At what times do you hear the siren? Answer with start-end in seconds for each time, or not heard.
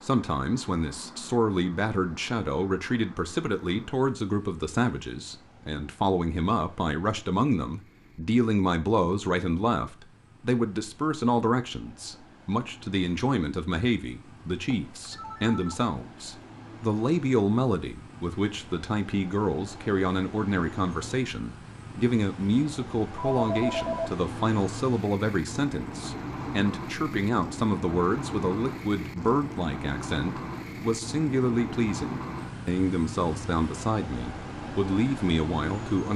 not heard.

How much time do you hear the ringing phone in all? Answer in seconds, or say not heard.
2 s.